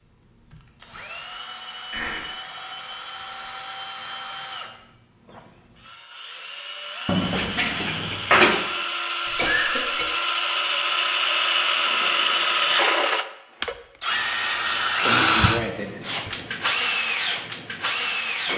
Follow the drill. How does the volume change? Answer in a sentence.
The loudness of the drill goes up.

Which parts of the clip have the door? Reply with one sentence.
You can hear the door from 7.0 to 8.6 s.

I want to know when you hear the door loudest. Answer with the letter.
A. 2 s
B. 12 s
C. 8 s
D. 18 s
C.